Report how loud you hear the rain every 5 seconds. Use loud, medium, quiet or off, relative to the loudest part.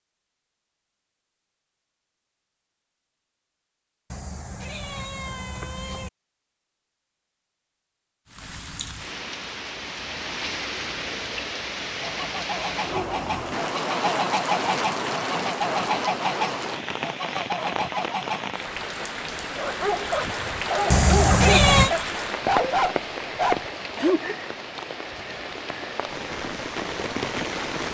off, medium, loud, loud, loud, loud.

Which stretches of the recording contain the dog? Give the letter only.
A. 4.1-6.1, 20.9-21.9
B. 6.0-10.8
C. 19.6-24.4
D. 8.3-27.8
C.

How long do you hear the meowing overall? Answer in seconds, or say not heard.
3 s.